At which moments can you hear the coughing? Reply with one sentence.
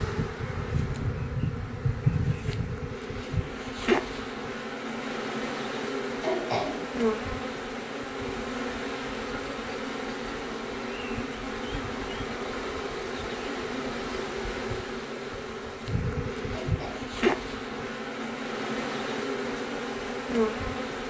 You can hear the coughing from 6.2 to 6.9 s and from 16.5 to 17.1 s.